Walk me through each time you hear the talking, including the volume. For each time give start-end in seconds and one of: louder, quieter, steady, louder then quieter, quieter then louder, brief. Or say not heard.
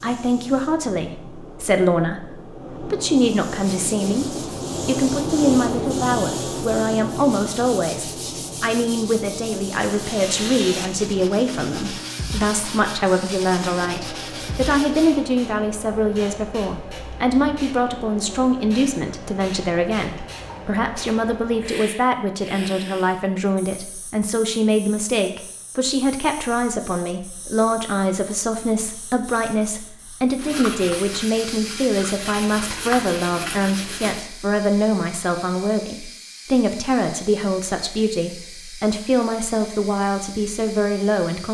0.0-41.4 steady.